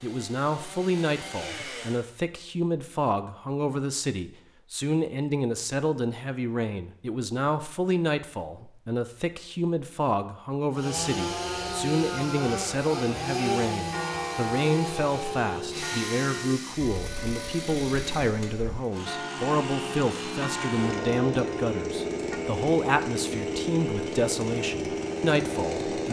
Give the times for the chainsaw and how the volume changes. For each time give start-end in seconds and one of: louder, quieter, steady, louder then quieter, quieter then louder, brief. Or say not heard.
0.0-2.0 brief
10.7-26.0 quieter then louder.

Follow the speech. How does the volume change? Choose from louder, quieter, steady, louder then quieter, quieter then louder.
steady.